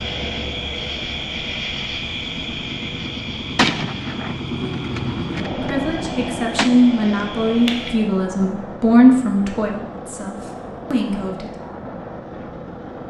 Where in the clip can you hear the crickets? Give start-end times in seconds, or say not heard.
0.0-8.0.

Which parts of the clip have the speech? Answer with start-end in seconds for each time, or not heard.
5.6-11.5.